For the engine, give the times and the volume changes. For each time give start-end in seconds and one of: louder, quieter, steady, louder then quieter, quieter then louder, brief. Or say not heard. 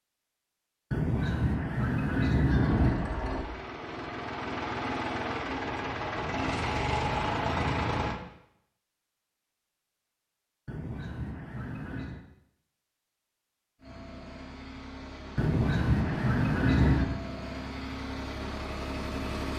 2.6-8.2 louder
13.8-19.5 louder.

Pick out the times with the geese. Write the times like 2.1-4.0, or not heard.
0.9-2.9, 6.2-8.2, 10.7-12.2, 15.3-17.1.